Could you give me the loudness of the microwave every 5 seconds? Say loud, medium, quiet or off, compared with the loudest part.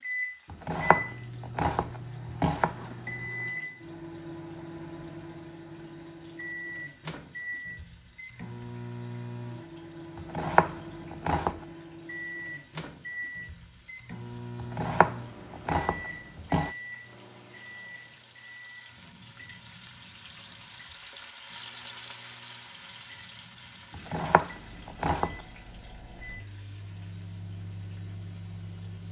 loud, loud, loud, medium, quiet, medium.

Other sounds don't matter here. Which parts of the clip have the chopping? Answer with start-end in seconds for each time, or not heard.
0.5-3.0, 10.2-11.6, 14.6-16.7, 23.9-25.4.